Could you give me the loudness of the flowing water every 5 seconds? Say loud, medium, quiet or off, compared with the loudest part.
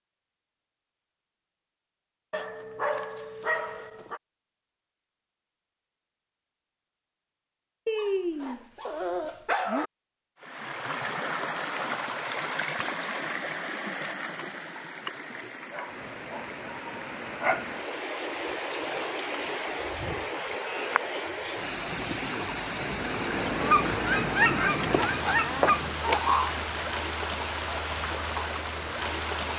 off, off, loud, loud, loud, loud.